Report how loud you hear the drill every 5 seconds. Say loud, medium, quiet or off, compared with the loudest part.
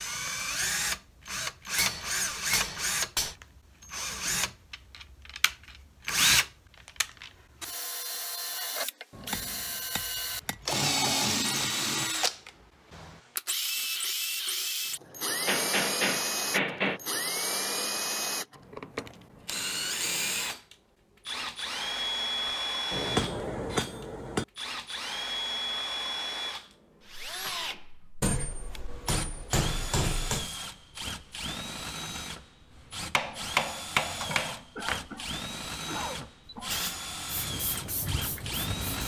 loud, loud, loud, loud, loud, medium, medium, medium.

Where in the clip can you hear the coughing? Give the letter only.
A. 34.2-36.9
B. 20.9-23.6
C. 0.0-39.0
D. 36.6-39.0
A.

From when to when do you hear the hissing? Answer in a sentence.
The hissing can be heard from 36.6 to 39.0 s.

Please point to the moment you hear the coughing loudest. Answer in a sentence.
The volume of the coughing peaks at 36 seconds.